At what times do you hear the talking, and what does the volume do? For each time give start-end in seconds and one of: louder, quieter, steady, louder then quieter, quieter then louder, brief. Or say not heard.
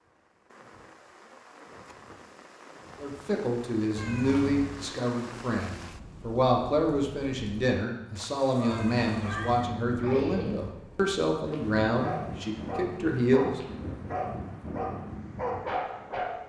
3.0-13.6 steady.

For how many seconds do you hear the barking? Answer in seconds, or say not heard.
8 s.